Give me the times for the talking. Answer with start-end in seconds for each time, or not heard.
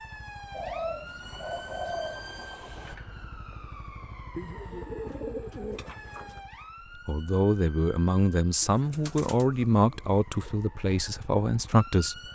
7.0-12.2.